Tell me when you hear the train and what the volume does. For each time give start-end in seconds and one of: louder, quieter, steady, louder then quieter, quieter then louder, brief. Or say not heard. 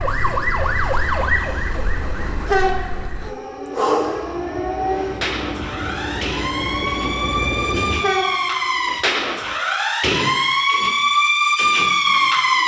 2.1-9.6 quieter then louder.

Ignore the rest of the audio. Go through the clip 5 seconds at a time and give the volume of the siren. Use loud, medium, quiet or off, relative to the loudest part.
medium, medium, loud.